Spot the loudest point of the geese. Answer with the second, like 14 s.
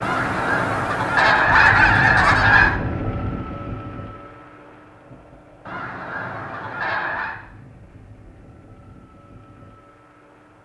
2 s.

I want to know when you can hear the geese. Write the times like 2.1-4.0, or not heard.
0.0-2.8, 5.7-7.3.